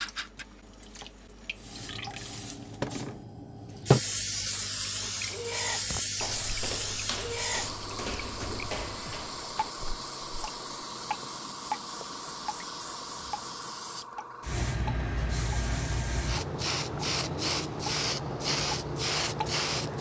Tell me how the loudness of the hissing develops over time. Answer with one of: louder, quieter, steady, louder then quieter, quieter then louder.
quieter then louder.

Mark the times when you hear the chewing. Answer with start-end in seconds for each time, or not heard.
not heard.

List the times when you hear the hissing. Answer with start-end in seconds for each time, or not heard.
1.6-19.9.